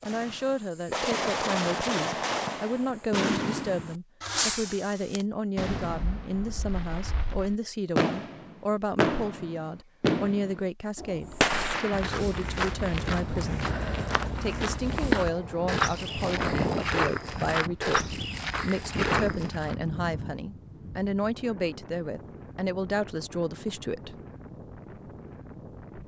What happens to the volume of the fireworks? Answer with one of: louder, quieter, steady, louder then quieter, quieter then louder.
quieter then louder.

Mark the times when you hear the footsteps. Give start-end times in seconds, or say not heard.
11.2-19.8.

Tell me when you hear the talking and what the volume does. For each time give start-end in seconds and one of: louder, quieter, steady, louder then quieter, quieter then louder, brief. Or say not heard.
0.0-13.7 steady
14.4-24.2 steady.